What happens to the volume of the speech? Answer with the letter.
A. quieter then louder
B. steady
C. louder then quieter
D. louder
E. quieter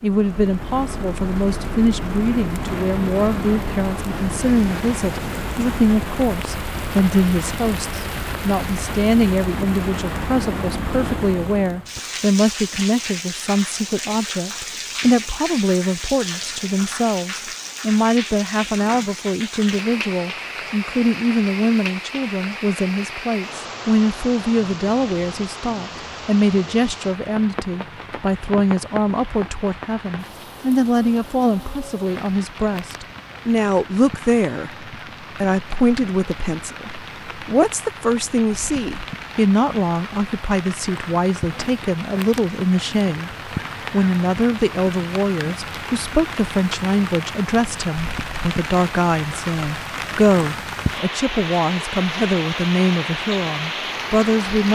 B.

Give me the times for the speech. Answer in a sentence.
The speech can be heard from 0.0 to 54.7 s.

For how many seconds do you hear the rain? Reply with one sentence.
The rain can be heard for 55 seconds in total.